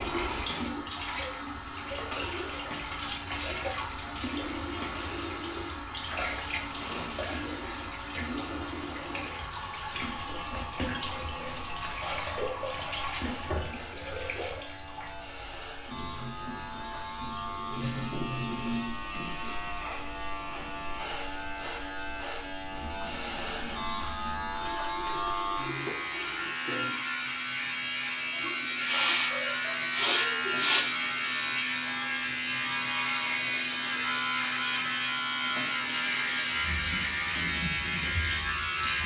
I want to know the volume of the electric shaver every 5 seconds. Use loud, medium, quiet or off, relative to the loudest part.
quiet, quiet, quiet, medium, medium, loud, loud, loud.